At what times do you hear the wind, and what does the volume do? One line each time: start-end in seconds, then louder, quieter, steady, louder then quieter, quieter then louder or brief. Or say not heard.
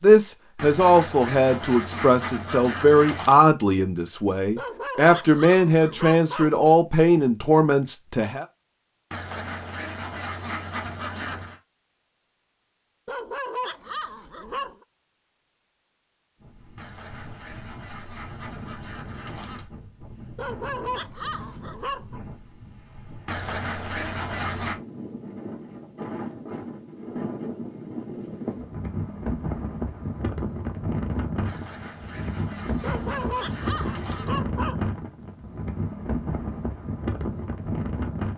16.4-38.3 louder.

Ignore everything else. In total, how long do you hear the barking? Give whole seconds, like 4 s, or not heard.
8 s.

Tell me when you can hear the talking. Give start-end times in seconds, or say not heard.
0.0-8.4.